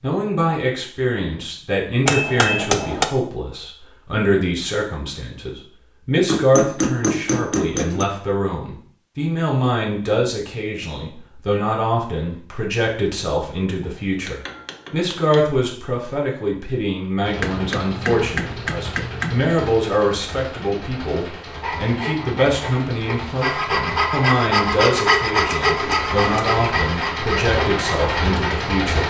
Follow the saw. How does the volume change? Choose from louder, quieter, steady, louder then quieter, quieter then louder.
louder then quieter.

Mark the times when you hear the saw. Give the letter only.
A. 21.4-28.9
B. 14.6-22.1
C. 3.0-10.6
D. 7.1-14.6
A.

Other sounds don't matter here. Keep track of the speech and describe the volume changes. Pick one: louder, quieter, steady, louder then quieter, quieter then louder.
steady.